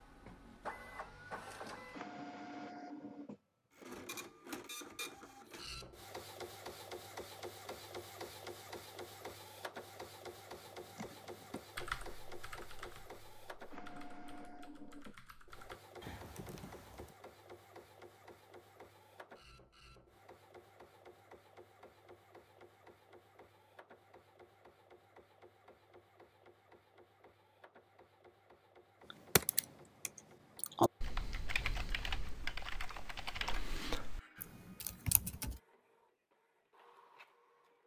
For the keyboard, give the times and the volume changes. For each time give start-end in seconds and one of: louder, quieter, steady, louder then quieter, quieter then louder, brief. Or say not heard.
10.5-17.1 quieter then louder
29.1-35.6 louder then quieter.